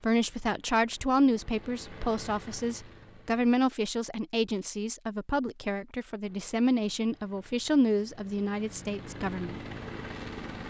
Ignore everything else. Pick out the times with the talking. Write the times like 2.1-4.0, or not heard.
0.0-9.6.